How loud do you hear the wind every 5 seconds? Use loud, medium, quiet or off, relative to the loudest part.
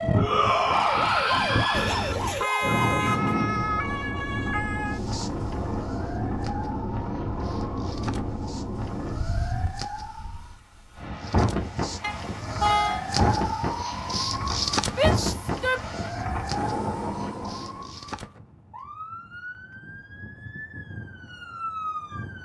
loud, loud, loud, loud, off.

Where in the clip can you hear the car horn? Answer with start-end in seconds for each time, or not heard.
1.7-3.4, 12.0-13.1.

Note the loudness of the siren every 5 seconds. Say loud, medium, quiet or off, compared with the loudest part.
loud, medium, loud, medium, medium.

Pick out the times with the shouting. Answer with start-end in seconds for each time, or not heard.
0.1-2.1, 14.8-15.8.